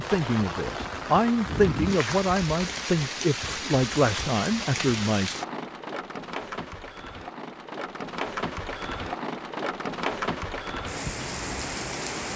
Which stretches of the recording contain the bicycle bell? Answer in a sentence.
The bicycle bell can't be heard in this clip.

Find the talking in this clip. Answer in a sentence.
You can hear the talking from 0.0 to 5.3 s.